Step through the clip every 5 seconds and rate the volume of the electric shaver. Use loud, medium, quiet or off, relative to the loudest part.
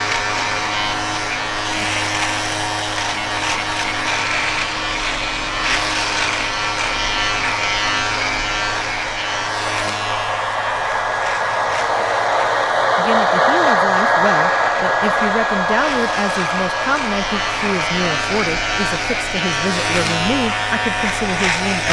loud, loud, medium, loud, loud.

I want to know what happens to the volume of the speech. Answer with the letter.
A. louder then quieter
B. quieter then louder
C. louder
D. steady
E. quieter
D.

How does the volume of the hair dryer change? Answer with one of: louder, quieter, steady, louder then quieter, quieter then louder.
louder then quieter.